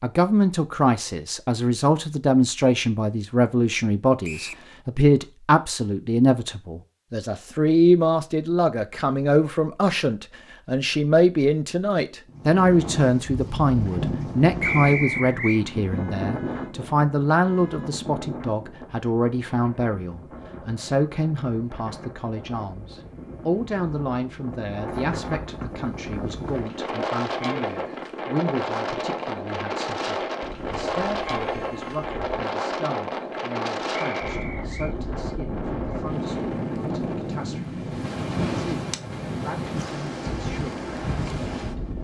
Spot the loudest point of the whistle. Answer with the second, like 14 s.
15 s.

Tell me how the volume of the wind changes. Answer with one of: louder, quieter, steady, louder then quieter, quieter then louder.
quieter then louder.